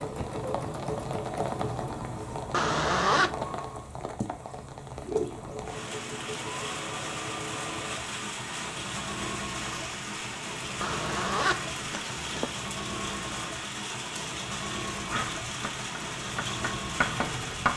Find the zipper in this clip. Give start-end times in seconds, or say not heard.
2.5-3.3, 10.8-12.5.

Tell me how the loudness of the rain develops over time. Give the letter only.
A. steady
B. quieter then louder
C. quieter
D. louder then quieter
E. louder
A.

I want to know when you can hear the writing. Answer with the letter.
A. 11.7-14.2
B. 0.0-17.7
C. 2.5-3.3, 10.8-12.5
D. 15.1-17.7
D.